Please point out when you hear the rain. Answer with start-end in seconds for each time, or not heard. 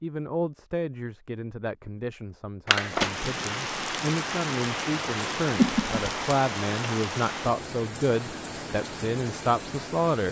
2.7-10.2.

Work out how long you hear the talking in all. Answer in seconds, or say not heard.
10 s.